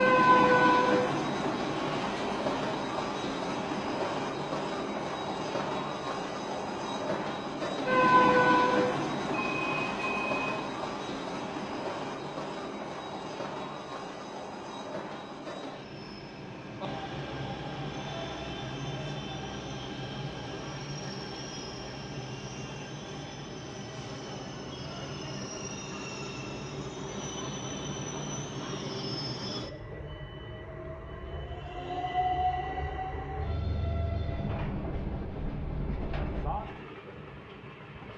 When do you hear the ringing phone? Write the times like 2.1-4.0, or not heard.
9.3-10.7.